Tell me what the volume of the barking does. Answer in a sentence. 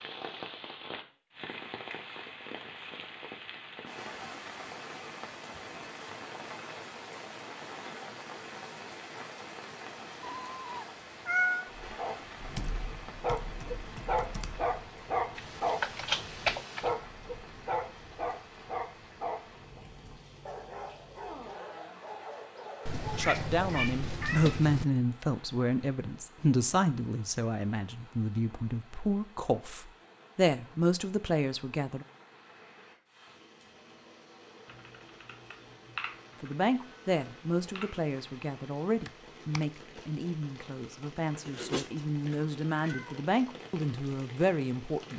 The loudness of the barking goes down.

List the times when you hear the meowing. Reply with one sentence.
You can hear the meowing from 10.2 to 11.7 s, from 22.9 to 24.9 s and from 41.5 to 43.2 s.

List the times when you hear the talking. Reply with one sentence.
You can hear the talking from 23.1 to 32.0 s and from 36.4 to 45.1 s.